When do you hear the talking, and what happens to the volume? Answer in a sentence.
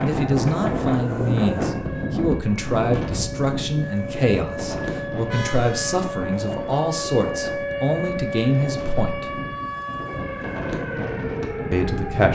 The talking can be heard from 0.0 to 9.3 s, at a steady volume; and briefly from 11.7 to 12.2 s.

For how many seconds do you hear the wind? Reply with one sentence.
You can hear the wind for 12 seconds altogether.